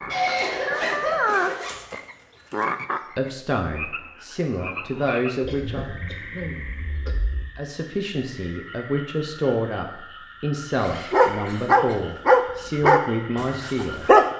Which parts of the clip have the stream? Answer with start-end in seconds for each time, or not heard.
not heard.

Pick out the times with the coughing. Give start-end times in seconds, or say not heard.
0.1-1.6, 5.5-7.2, 11.4-12.2.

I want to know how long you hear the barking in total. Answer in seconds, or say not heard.
3 s.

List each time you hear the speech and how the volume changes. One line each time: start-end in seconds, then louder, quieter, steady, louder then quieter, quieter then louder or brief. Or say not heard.
3.1-6.0 brief
7.5-14.1 steady.